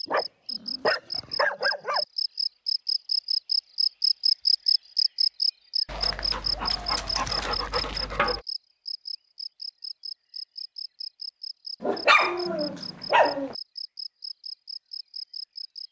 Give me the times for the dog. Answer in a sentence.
You can hear the dog from 0.1 to 2.0 s, from 5.8 to 8.4 s and from 11.8 to 13.6 s.